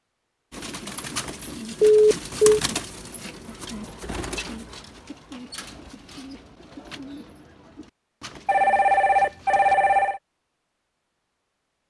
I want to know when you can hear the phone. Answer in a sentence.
The phone can be heard from 1.8 to 2.6 s and from 8.4 to 10.2 s.